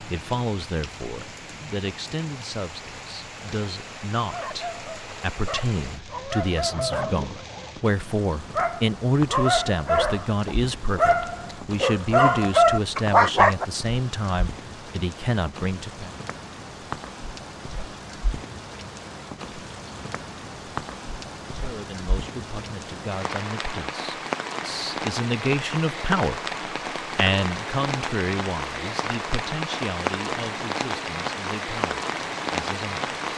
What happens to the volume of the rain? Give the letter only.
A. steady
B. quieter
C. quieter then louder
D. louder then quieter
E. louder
E.